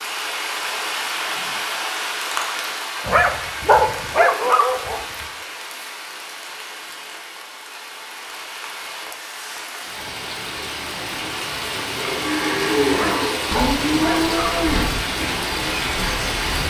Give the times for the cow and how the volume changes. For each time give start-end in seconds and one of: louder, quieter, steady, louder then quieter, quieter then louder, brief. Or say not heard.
11.7-16.6 quieter.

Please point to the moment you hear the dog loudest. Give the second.
4 s.